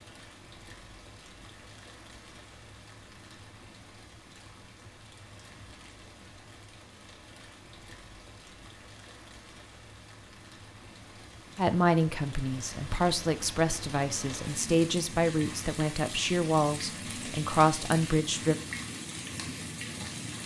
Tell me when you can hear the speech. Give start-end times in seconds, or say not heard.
11.6-18.6.